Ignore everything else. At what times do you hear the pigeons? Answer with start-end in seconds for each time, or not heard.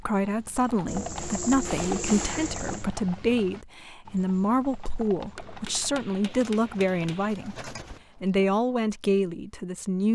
0.8-2.9, 6.2-8.0.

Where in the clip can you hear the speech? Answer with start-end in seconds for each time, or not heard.
0.0-10.1.